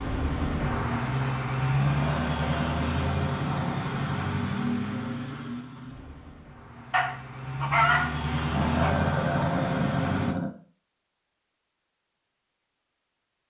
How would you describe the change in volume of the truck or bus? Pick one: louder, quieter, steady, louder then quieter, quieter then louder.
quieter then louder.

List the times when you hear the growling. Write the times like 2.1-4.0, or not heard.
1.8-3.8, 8.5-10.5.